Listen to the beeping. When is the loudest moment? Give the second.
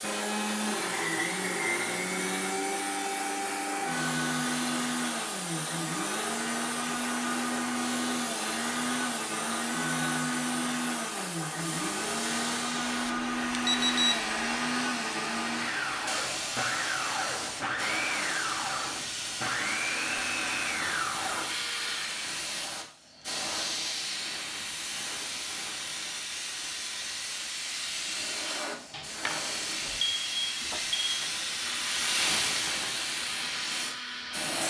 14 s.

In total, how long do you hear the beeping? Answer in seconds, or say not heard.
3 s.